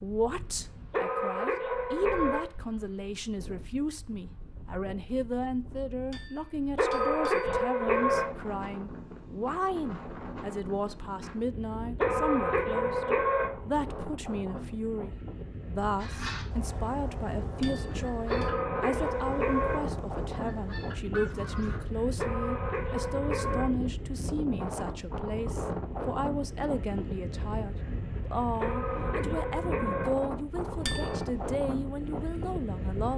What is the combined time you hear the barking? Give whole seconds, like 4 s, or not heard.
9 s.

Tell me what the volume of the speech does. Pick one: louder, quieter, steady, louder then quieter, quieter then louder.
steady.